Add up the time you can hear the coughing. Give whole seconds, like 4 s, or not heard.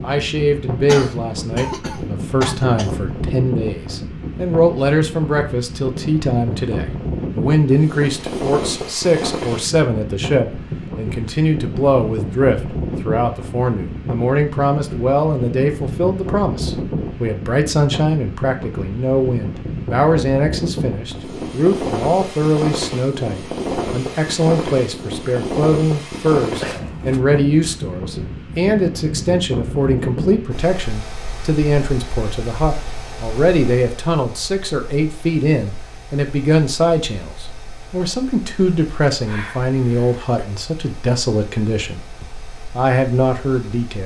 4 s.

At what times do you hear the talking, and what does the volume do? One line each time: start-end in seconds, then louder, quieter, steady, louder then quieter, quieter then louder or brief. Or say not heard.
0.0-44.0 steady.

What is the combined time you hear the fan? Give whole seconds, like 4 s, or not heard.
44 s.